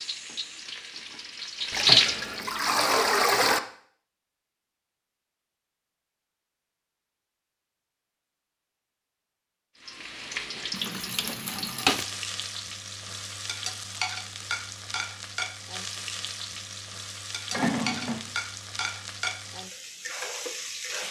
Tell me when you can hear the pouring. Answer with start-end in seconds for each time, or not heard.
1.7-3.6, 10.7-12.1, 17.5-18.2.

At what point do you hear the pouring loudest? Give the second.
3 s.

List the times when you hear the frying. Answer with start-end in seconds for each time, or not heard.
0.0-2.6, 9.8-21.0.